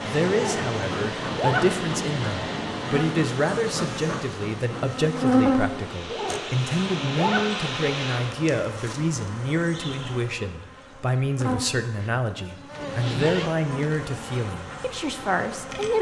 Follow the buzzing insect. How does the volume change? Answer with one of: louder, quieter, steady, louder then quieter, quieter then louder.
louder then quieter.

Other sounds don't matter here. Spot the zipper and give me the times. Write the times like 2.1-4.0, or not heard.
0.3-1.9, 6.0-7.7, 12.7-13.5.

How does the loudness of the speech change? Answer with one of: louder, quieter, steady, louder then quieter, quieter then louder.
steady.